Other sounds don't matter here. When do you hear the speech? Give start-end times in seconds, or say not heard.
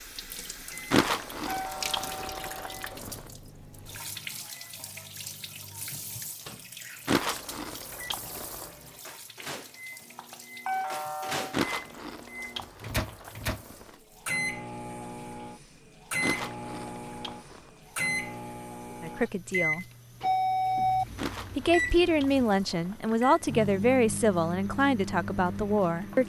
19.0-19.9, 21.6-26.2.